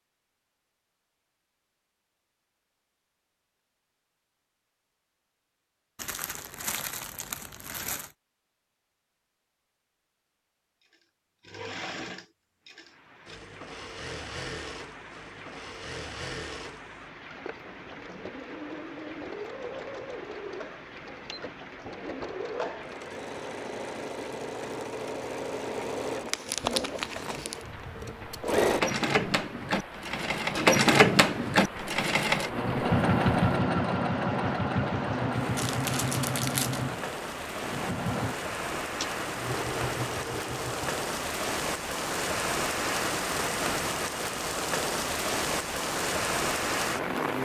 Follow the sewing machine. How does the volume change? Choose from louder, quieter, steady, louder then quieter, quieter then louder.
louder then quieter.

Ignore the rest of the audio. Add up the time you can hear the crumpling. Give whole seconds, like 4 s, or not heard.
5 s.